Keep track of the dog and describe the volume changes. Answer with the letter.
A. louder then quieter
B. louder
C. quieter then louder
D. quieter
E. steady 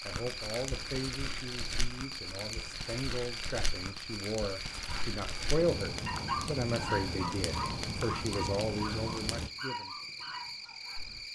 A.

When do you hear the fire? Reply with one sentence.
The fire can be heard from 0.0 to 9.5 s.